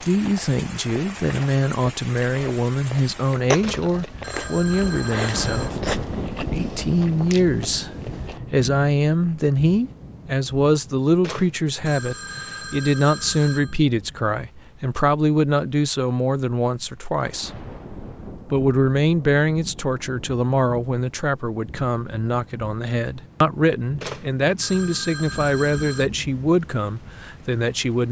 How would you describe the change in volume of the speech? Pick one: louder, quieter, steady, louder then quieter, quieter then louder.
steady.